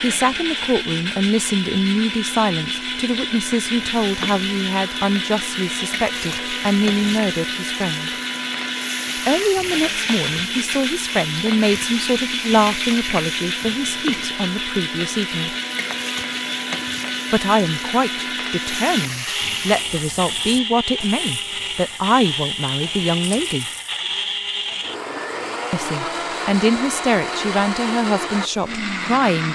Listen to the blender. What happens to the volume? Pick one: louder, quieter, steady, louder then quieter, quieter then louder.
steady.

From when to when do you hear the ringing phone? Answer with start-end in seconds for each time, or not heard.
not heard.